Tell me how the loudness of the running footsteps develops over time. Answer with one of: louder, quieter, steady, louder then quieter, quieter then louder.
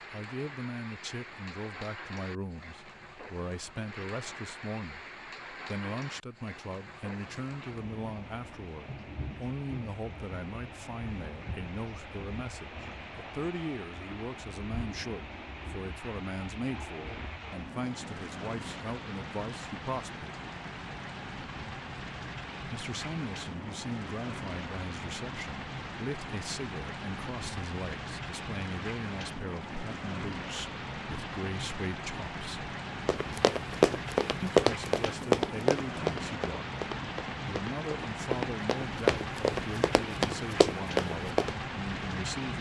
quieter then louder.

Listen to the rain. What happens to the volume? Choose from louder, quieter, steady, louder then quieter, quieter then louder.
louder.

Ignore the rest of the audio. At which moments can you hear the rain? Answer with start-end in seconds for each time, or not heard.
0.0-42.5.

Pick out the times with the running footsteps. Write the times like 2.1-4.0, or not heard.
33.0-41.5.